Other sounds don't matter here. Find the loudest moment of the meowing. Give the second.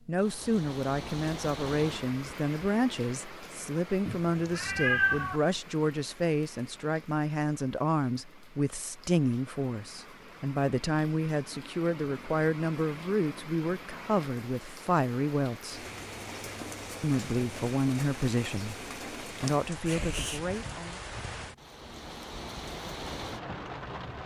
5 s.